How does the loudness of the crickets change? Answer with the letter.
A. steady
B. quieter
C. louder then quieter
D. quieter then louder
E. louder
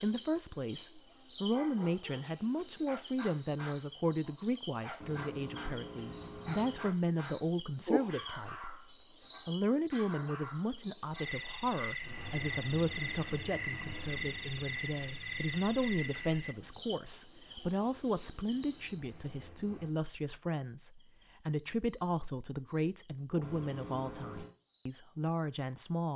B.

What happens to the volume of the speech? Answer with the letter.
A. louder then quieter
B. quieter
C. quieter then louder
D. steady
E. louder
D.